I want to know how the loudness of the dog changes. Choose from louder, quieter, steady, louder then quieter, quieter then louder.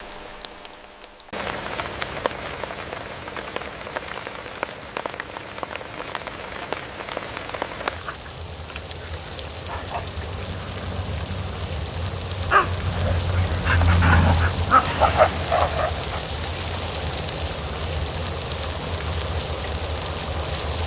louder.